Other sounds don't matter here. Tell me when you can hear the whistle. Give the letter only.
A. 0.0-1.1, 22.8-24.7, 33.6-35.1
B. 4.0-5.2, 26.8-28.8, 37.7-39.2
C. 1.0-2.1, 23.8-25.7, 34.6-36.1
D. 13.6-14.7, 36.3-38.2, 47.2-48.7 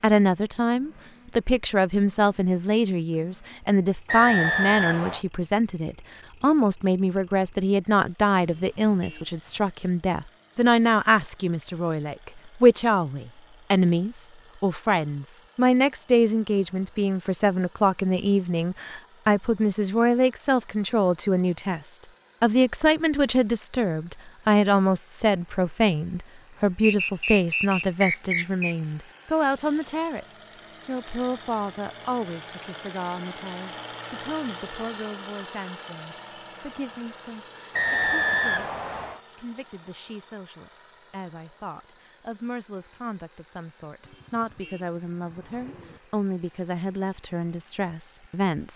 B.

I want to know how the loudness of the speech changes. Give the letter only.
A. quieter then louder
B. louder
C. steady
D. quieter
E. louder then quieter
D.